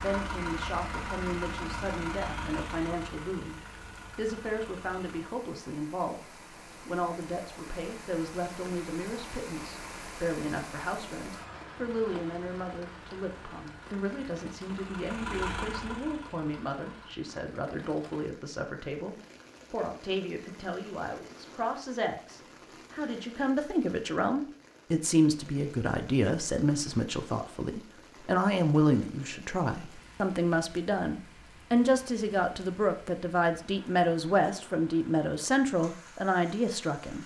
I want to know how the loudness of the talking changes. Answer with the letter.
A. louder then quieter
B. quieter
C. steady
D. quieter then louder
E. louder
E.